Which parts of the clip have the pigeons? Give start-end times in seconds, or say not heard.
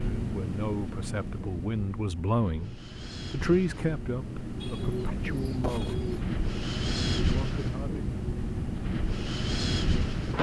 4.6-6.2.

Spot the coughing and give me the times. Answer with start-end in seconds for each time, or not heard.
not heard.